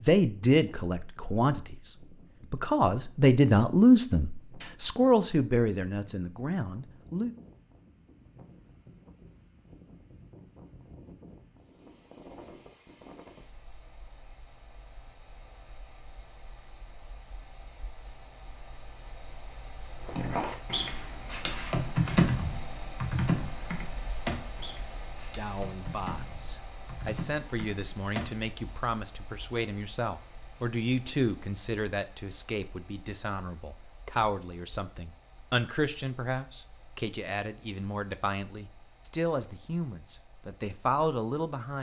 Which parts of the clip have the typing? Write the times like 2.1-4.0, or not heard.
20.1-28.5.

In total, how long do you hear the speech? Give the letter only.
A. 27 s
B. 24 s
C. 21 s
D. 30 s
B.